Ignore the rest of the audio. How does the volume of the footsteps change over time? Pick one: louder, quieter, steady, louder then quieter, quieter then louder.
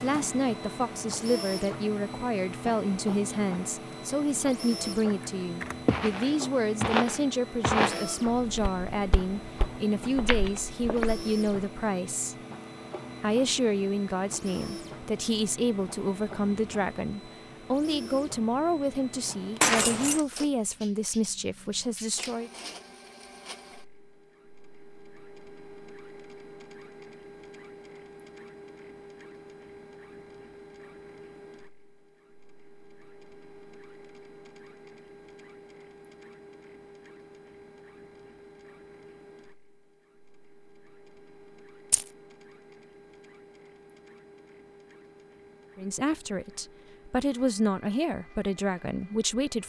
quieter then louder.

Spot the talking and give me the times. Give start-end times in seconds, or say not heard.
0.0-12.3, 13.2-22.5, 45.8-49.6.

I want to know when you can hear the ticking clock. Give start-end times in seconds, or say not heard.
not heard.